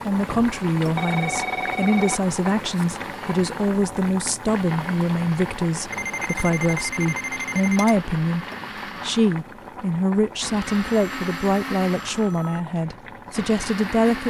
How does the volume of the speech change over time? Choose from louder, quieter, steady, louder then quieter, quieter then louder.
steady.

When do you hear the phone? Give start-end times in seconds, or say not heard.
0.2-2.2, 5.9-8.0, 10.6-12.6.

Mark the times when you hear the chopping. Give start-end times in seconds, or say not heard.
not heard.